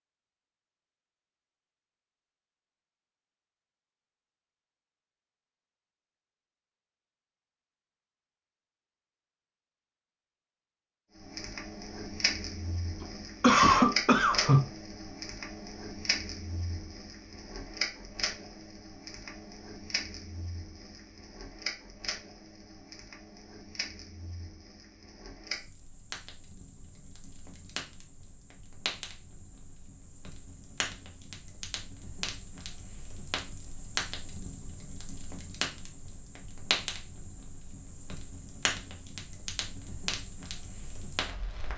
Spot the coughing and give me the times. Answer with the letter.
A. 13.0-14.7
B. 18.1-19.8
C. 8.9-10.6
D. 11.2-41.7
A.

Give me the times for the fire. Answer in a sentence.
The fire can be heard from 11.2 to 41.7 s.